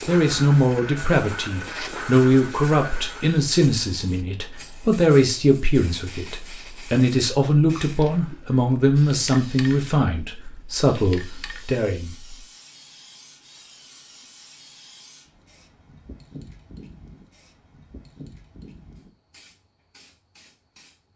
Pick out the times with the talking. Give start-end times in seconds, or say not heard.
0.1-12.3.